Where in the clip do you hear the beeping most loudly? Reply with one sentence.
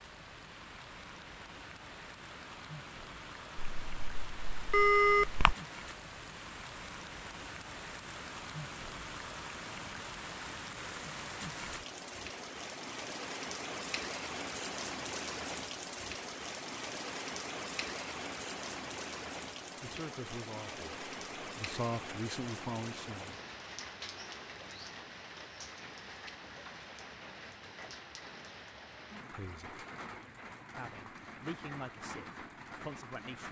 The loudest moment of the beeping is at 5 seconds.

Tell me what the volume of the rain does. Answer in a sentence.
The volume of the rain goes up, then down.